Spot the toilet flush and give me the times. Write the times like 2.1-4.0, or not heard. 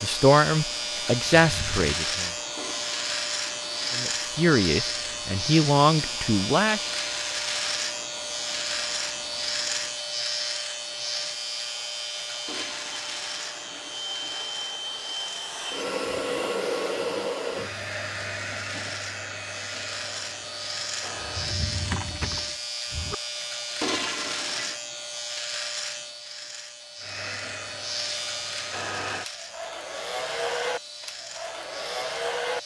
2.5-4.0, 12.4-15.2, 23.8-24.8.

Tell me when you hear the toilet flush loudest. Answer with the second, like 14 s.
24 s.